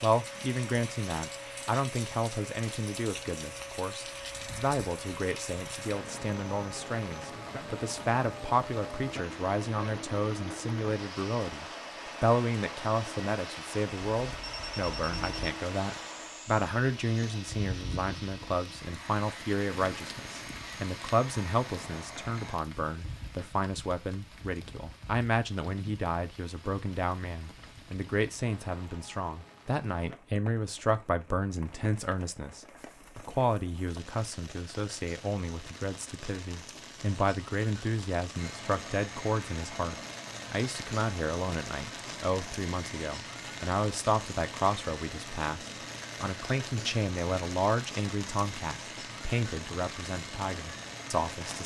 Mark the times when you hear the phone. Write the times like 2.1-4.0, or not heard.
14.1-15.6.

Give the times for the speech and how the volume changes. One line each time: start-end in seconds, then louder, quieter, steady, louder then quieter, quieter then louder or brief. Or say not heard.
0.0-51.6 steady.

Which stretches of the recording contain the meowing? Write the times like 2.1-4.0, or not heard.
not heard.